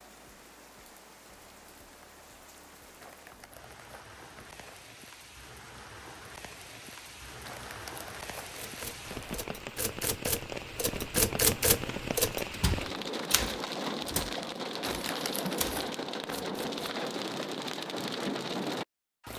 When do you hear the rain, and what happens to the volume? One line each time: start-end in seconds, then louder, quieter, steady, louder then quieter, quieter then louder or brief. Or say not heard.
0.0-19.3 louder.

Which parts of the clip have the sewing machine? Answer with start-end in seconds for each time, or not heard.
not heard.